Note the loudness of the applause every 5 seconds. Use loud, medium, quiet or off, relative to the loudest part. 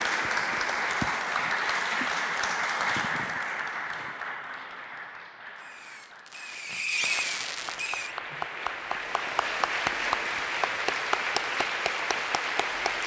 loud, medium, loud.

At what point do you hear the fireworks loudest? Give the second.
7 s.